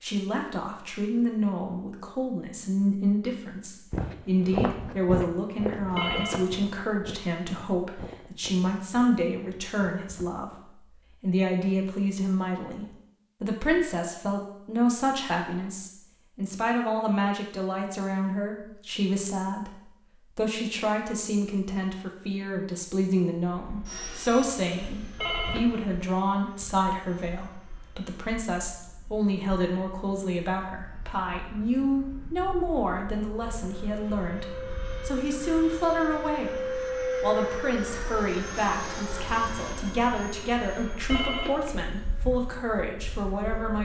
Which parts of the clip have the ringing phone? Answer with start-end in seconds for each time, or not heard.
6.0-6.7, 25.1-25.9, 41.0-41.8.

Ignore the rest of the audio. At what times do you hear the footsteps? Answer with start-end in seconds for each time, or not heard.
3.9-10.4.